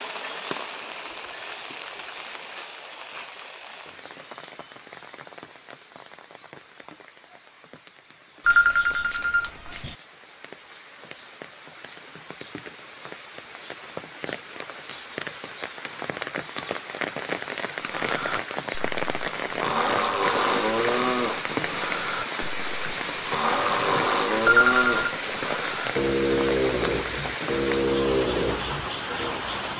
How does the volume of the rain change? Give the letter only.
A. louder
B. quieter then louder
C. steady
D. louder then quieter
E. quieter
B.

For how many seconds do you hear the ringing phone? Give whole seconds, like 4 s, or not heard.
2 s.